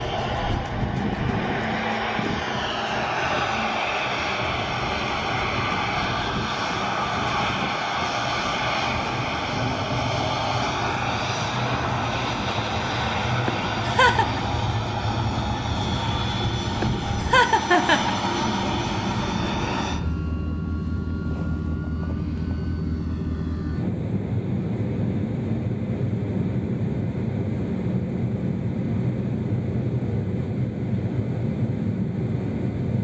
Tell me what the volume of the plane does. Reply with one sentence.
The volume of the plane stays about the same.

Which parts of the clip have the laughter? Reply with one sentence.
The laughter can be heard from 13.4 to 14.4 s and from 16.8 to 18.1 s.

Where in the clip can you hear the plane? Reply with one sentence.
You can hear the plane from 0.0 to 32.9 s.